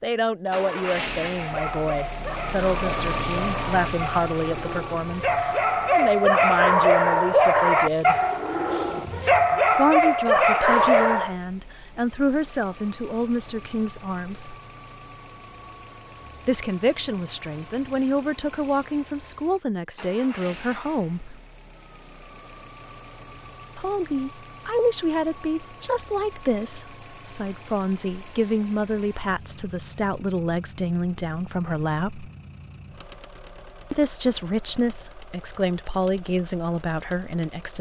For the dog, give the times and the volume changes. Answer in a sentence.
The dog can be heard from 1.3 to 11.3 s, getting louder.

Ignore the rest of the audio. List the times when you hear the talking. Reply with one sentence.
The talking can be heard from 0.0 to 8.2 s, from 9.8 to 14.6 s, from 16.4 to 21.4 s, from 23.8 to 32.3 s and from 33.9 to 37.7 s.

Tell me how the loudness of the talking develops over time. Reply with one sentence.
The volume of the talking stays about the same.